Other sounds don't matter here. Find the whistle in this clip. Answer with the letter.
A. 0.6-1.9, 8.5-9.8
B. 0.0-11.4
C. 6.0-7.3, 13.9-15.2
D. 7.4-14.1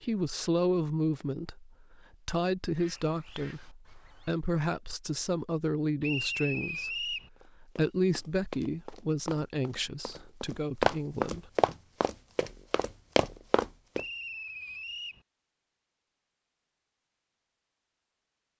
C.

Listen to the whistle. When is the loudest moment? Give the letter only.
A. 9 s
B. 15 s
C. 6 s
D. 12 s
C.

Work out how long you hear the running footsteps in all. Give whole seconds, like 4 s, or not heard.
7 s.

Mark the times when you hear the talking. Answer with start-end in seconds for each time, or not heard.
0.0-11.4.